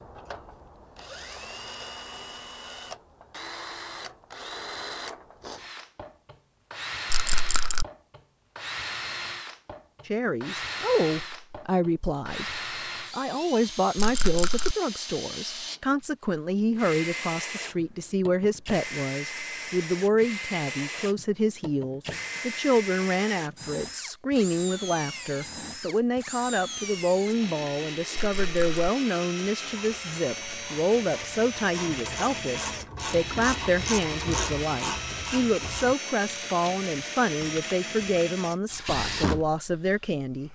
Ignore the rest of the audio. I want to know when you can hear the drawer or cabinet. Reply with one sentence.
The drawer or cabinet can't be heard in this clip.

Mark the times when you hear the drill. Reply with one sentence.
The drill can be heard from 0.0 to 40.5 s.